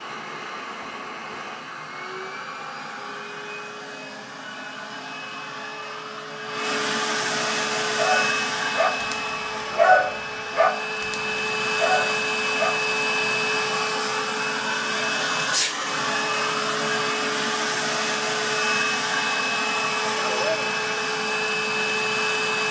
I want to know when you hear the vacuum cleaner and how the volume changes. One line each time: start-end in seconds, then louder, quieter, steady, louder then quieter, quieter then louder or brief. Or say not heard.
0.0-22.6 louder.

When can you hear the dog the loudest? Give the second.
10 s.